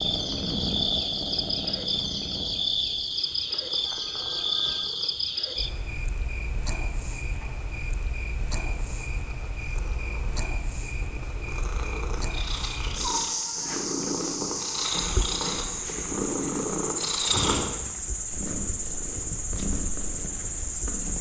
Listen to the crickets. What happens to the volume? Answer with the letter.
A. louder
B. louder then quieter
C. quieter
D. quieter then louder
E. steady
D.